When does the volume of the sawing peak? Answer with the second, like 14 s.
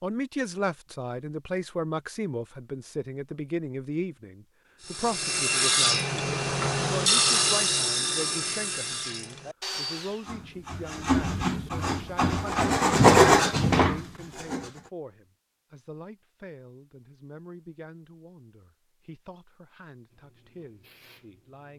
13 s.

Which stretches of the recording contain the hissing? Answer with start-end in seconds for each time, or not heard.
20.1-21.7.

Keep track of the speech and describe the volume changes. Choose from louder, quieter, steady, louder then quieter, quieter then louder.
quieter.